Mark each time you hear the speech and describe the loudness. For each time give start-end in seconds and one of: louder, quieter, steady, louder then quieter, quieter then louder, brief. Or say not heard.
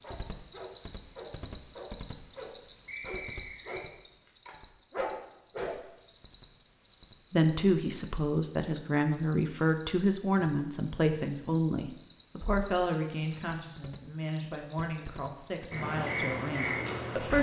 7.3-17.3 quieter.